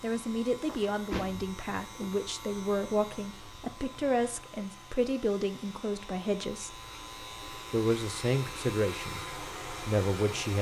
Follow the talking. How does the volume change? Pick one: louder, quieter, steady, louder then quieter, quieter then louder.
steady.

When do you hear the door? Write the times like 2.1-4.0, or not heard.
0.6-2.1.